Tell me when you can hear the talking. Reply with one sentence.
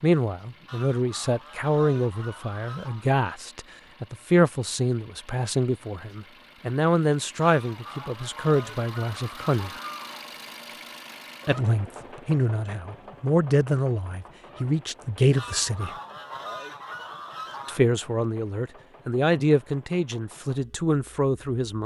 The talking can be heard from 0.0 to 9.8 s, from 11.4 to 15.9 s and from 17.6 to 21.8 s.